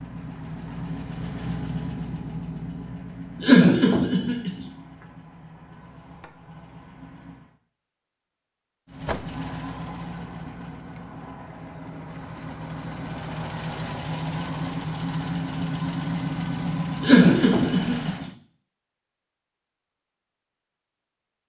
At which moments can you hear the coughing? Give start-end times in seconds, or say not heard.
3.4-4.7, 17.0-18.2.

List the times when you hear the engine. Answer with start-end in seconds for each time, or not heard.
0.0-7.6, 8.8-18.4.